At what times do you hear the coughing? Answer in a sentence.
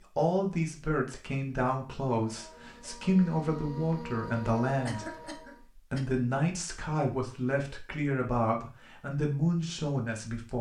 You can hear the coughing from 4.8 to 6.2 s.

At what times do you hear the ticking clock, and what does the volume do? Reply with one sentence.
The ticking clock can't be heard in this clip.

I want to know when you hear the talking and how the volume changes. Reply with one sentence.
You can hear the talking from 0.1 to 10.5 s, at a steady volume.